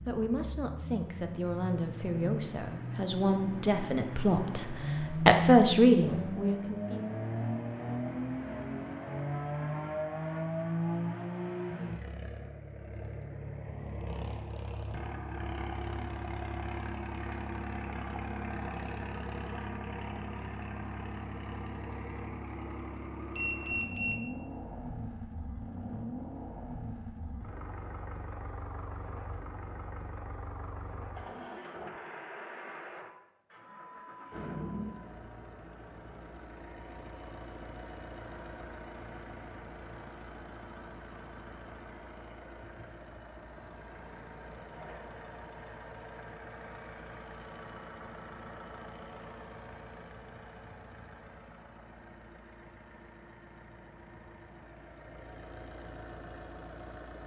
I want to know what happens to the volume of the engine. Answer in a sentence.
The volume of the engine goes down.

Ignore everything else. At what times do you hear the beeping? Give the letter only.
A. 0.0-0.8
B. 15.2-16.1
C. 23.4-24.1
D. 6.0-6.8
C.